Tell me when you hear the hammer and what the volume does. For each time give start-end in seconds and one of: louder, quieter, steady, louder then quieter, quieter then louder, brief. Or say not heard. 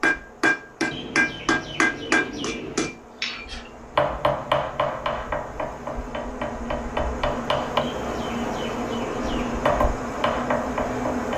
0.0-7.8 quieter
9.7-11.3 brief.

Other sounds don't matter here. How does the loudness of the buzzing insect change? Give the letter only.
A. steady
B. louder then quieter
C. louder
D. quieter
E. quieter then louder
C.